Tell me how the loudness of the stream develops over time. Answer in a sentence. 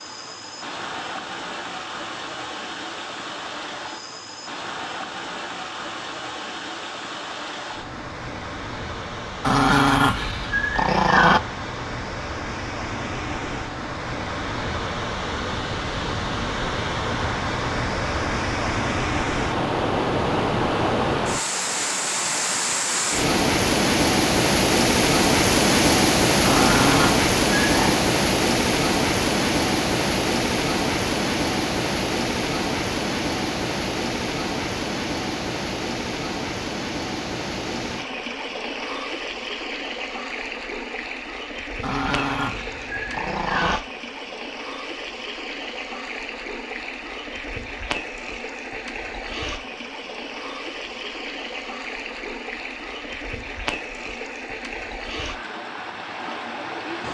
The volume of the stream goes up, then down.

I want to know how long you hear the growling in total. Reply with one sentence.
The growling can be heard for 6 seconds in total.